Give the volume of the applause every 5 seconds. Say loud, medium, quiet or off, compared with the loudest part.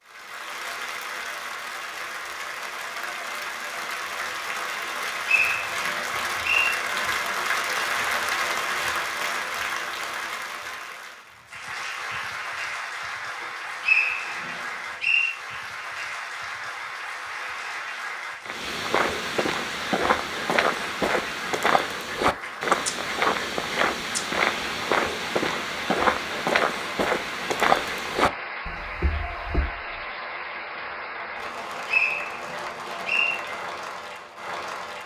medium, loud, medium, medium, medium, medium, medium.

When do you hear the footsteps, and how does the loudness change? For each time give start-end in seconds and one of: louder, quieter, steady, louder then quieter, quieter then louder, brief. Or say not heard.
18.4-29.8 steady.